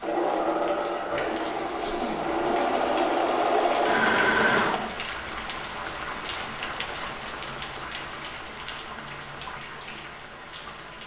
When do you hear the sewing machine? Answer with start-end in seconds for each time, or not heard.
0.0-5.0.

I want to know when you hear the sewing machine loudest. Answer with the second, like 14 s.
4 s.